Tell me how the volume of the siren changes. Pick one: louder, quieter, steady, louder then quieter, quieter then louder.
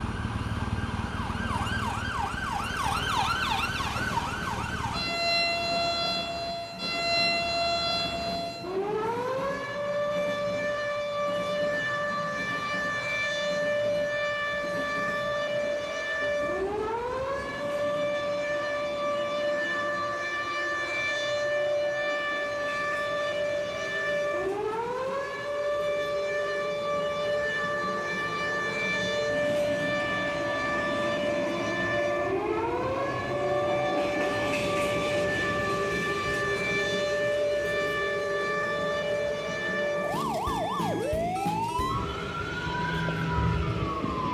steady.